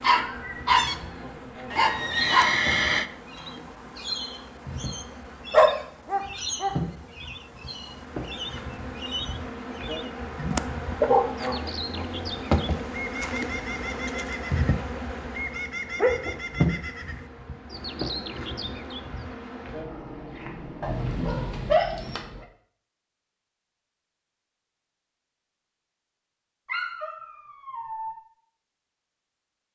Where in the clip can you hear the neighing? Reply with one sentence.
You can hear the neighing from 1.7 to 3.1 s.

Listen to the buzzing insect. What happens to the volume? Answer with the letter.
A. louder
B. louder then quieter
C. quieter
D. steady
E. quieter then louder
A.